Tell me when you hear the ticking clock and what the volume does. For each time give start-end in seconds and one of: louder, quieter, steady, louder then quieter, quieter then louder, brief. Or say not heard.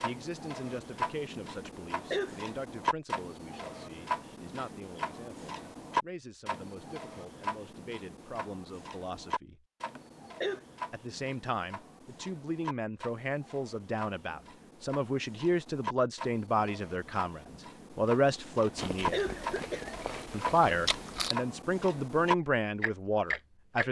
0.0-23.8 quieter then louder.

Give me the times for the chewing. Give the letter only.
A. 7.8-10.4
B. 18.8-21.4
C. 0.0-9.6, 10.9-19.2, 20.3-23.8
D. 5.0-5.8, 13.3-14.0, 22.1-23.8
B.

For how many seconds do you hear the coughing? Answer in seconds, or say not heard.
3 s.